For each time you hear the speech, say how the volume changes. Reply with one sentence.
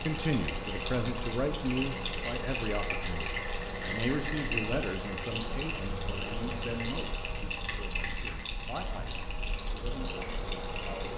You can hear the speech from 0.0 to 11.1 s, getting quieter.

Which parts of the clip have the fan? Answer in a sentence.
The fan can be heard from 0.0 to 11.1 s.